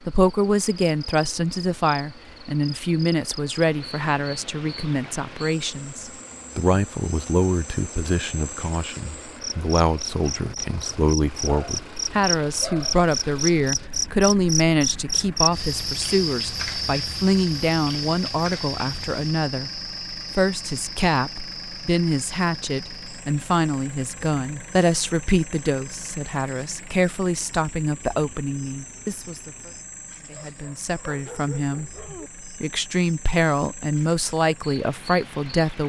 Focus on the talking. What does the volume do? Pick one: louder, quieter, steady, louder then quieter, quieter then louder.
steady.